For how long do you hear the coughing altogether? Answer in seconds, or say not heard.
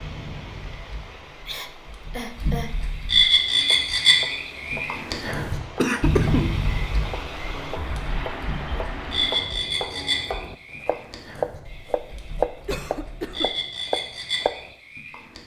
3 s.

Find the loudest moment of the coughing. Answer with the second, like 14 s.
6 s.